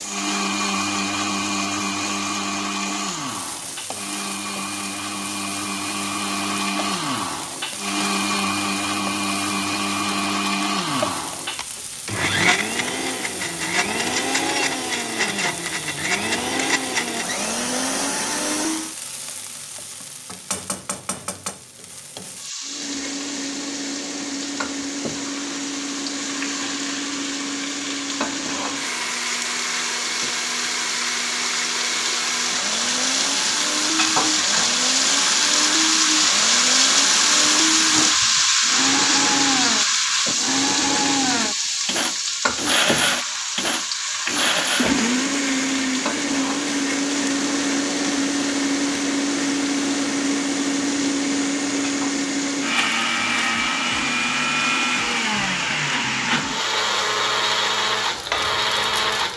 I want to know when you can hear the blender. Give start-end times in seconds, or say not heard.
0.0-18.9, 22.6-59.3.